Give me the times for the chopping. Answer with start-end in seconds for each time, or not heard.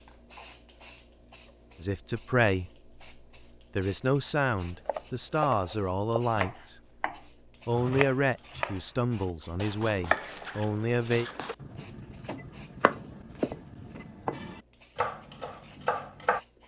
4.8-16.4.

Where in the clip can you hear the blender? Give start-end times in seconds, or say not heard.
not heard.